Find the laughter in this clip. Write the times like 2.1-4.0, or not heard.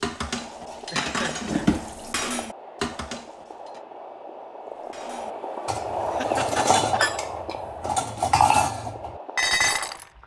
0.9-1.7, 6.0-7.2.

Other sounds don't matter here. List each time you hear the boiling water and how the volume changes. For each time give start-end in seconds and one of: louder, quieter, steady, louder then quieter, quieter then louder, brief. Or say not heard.
0.2-10.2 louder then quieter.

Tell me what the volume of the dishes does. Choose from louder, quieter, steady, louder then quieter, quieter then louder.
louder.